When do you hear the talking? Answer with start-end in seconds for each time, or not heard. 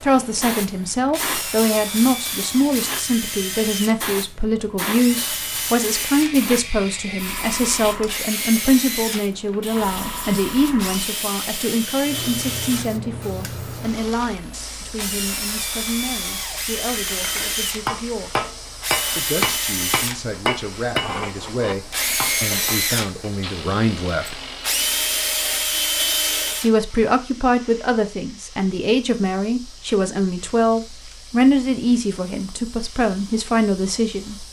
0.0-18.3, 19.1-24.4, 26.6-34.4.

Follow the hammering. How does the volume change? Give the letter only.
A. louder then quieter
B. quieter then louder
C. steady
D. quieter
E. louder
D.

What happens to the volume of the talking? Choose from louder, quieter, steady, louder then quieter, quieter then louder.
quieter then louder.